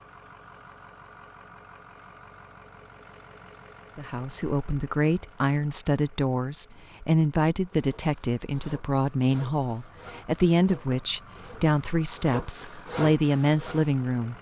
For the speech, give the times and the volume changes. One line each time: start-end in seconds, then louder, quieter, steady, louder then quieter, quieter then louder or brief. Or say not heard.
4.0-14.3 steady.